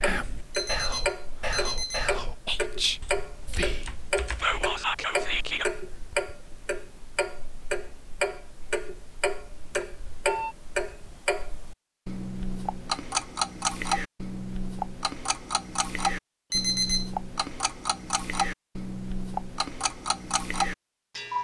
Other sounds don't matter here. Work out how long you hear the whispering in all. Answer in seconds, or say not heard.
6 s.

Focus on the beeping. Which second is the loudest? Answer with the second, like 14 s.
17 s.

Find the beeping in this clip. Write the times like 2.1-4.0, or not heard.
0.5-2.1, 9.7-10.6, 16.5-17.1.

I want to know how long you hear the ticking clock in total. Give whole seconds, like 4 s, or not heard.
21 s.